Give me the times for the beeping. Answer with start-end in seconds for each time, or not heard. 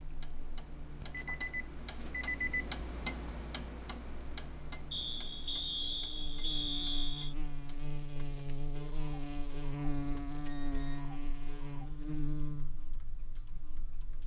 0.9-2.7, 4.9-7.3, 10.4-10.9.